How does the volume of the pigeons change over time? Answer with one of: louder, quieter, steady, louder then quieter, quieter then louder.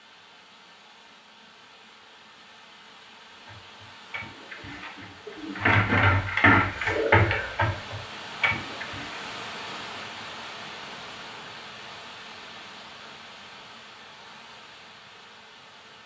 louder then quieter.